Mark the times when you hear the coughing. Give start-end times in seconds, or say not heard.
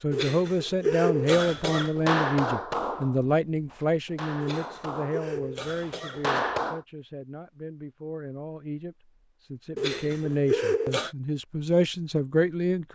0.1-1.9, 4.4-6.4, 9.8-11.1.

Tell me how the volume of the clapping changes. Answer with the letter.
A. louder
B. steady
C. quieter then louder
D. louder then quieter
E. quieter
C.